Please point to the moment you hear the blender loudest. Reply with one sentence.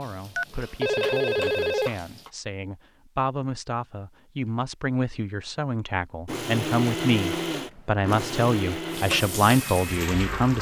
The loudest moment of the blender is at 7 seconds.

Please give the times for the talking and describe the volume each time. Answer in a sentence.
The talking can be heard from 0.0 to 10.5 s, getting louder.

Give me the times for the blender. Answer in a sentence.
The blender can be heard from 6.2 to 10.5 s.